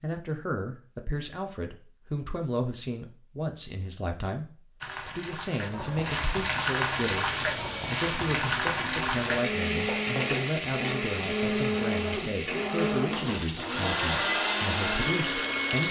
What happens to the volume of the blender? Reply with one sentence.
The volume of the blender goes up.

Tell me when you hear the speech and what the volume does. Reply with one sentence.
You can hear the speech from 0.0 to 15.8 s, at a steady volume.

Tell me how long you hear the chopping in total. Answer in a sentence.
You can't hear the chopping here.